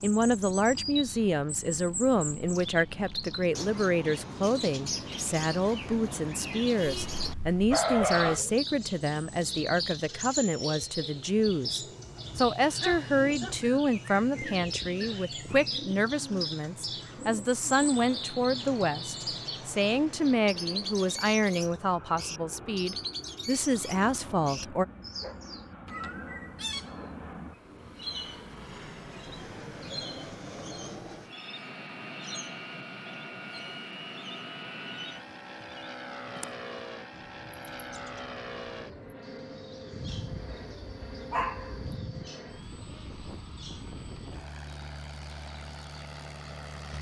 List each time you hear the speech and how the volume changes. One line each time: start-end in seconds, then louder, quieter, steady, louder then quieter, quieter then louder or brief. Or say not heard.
0.0-24.9 steady.